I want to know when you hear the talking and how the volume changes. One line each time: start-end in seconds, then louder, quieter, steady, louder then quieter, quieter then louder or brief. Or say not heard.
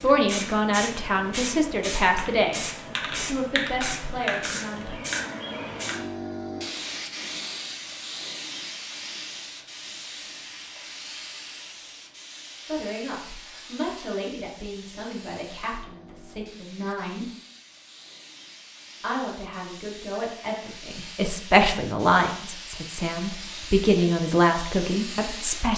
0.0-5.0 quieter
12.7-17.2 louder then quieter
19.0-25.7 louder.